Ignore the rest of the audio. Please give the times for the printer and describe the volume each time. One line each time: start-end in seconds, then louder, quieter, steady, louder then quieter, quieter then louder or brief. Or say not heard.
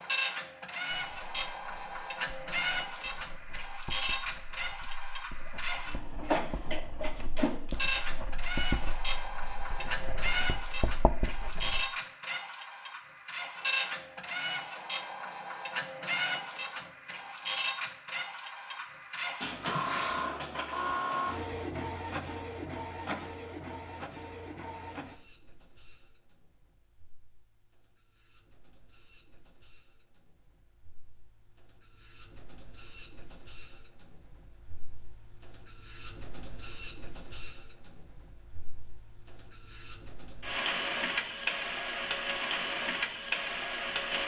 0.0-44.2 quieter then louder.